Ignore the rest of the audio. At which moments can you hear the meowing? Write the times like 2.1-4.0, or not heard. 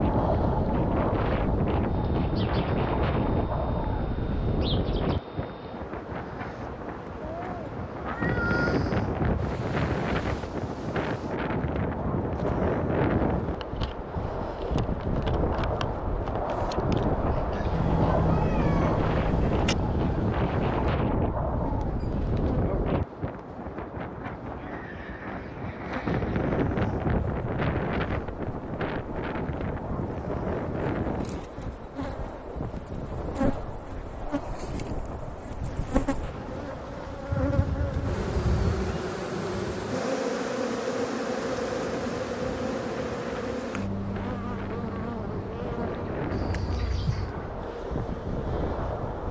7.2-8.7, 17.7-19.8, 46.3-47.4.